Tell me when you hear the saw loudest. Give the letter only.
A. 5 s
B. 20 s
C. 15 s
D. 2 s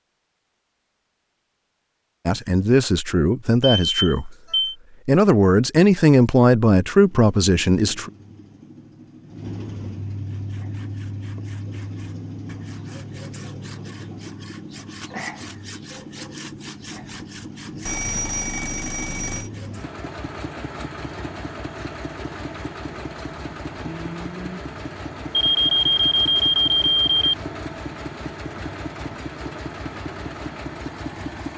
C.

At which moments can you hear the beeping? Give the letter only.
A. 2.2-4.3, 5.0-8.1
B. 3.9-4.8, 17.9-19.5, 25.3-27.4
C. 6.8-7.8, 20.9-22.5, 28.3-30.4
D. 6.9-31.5
B.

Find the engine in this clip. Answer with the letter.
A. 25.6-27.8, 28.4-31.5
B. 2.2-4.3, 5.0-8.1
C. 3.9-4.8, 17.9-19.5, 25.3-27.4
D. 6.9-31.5
D.